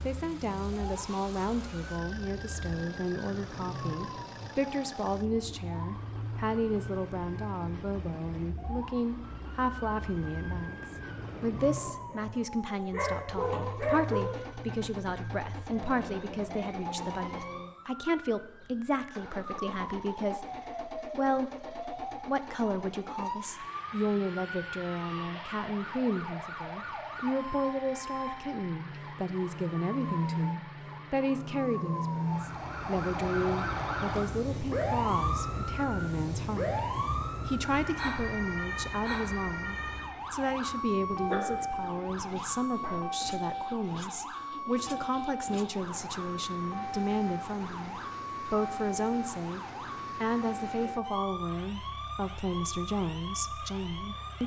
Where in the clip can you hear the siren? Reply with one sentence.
The siren can be heard from 0.0 to 54.4 s.